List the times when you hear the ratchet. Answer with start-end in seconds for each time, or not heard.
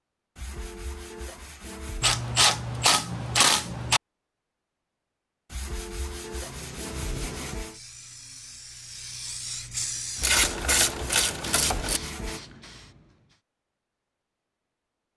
2.0-4.0, 10.2-12.0.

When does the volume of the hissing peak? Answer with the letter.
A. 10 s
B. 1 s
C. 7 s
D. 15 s
A.